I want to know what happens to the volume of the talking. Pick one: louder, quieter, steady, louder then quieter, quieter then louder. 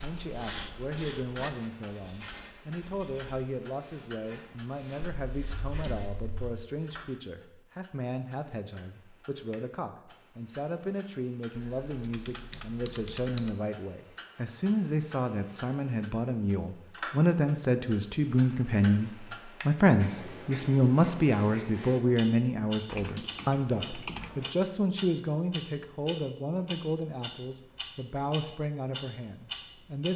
louder then quieter.